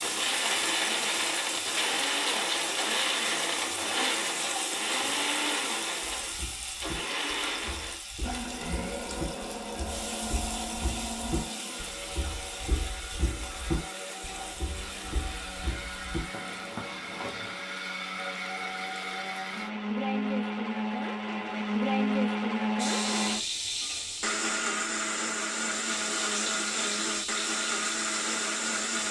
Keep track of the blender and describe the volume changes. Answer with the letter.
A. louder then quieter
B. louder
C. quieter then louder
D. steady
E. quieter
C.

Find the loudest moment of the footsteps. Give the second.
14 s.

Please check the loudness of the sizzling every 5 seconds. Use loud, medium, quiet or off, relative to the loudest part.
loud, medium, medium, quiet, loud, loud.